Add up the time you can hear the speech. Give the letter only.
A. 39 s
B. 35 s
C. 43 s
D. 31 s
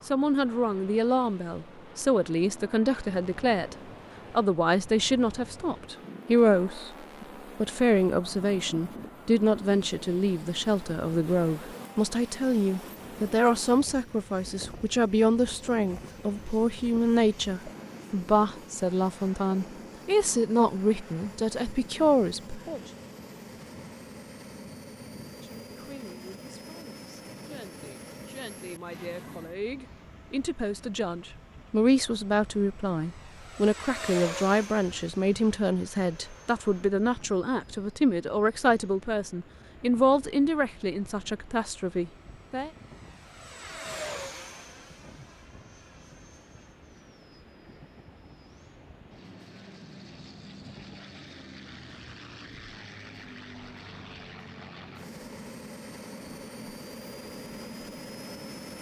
A.